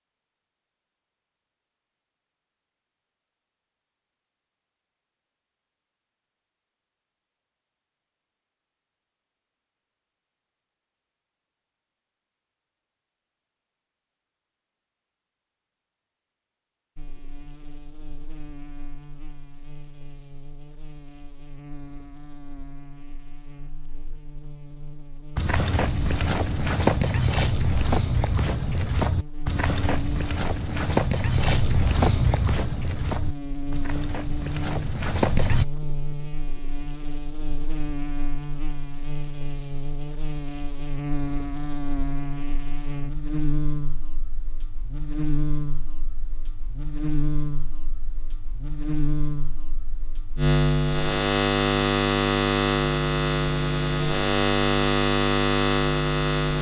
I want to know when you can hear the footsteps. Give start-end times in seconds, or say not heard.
25.4-35.6.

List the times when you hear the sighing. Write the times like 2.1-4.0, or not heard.
not heard.